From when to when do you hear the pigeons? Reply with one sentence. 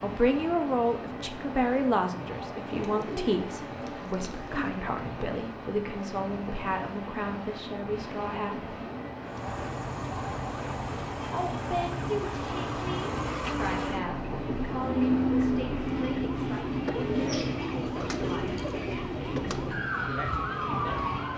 The pigeons can be heard from 2.7 to 4.7 s and from 16.9 to 18.9 s.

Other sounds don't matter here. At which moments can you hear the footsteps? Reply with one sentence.
The footsteps can't be heard in this clip.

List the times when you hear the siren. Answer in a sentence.
The siren can be heard from 9.2 to 21.3 s.